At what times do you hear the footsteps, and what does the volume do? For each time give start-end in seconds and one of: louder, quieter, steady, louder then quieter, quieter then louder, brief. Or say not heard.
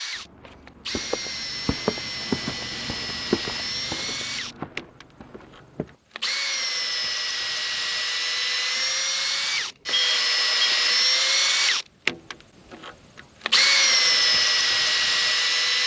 0.1-6.0 louder then quieter.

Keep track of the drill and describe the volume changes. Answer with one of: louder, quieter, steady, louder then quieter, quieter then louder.
louder.